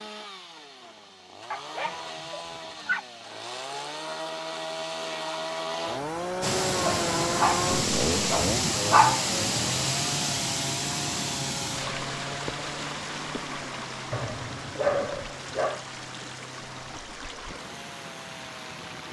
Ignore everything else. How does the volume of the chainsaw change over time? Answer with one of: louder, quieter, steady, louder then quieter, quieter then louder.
louder then quieter.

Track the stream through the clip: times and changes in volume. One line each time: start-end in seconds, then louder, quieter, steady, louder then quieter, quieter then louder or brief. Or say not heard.
6.4-19.0 quieter.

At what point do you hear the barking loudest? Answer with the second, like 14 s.
9 s.